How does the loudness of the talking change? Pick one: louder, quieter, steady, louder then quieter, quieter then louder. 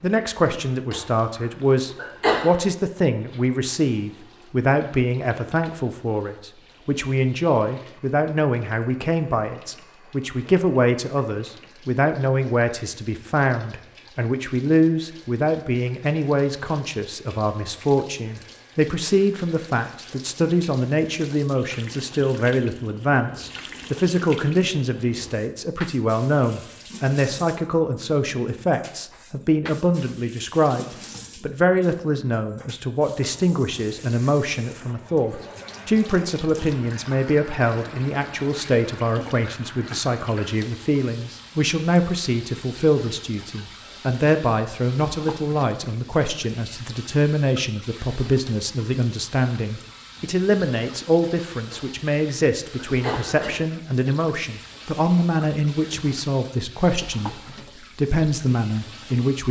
steady.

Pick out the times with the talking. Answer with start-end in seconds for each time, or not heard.
0.0-59.4.